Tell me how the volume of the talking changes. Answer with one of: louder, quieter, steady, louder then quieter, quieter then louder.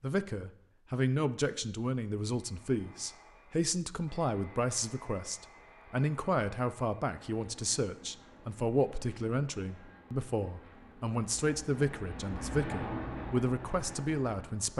steady.